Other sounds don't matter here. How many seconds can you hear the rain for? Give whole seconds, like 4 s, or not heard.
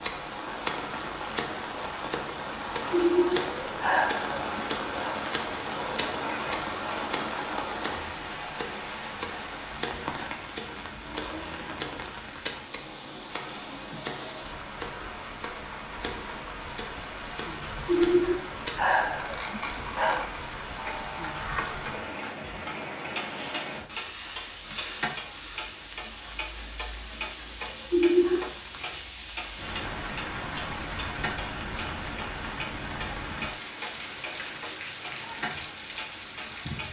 37 s.